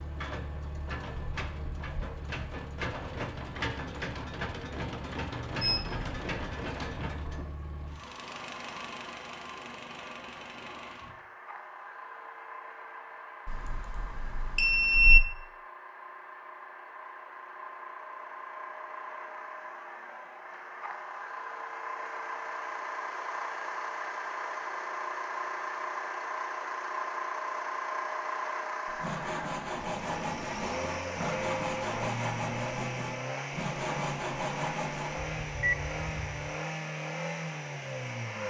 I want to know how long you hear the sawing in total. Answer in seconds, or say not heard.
6 s.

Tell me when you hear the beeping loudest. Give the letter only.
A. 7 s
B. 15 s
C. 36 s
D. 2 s
B.